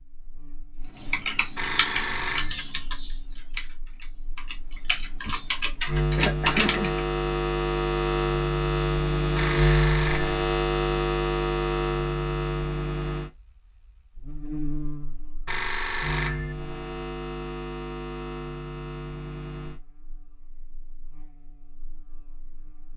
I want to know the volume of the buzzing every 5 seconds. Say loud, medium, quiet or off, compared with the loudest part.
quiet, loud, loud, medium, quiet.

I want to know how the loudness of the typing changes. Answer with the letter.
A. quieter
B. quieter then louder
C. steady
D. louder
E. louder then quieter
B.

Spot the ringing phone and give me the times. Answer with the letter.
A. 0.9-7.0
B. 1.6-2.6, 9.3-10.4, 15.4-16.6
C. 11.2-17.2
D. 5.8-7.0
B.